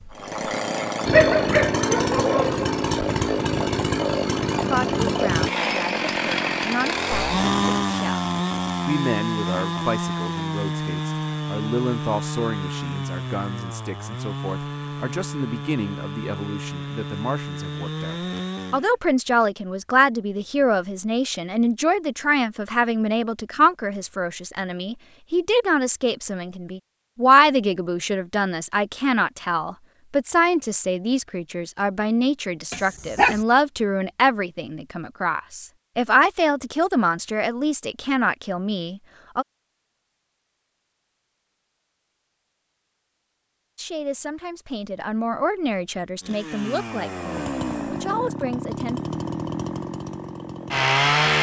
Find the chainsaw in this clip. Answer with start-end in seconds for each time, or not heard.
0.0-18.9, 46.2-51.3.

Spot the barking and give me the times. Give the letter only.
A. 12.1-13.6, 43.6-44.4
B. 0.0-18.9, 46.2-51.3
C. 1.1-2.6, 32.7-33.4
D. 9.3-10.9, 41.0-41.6
C.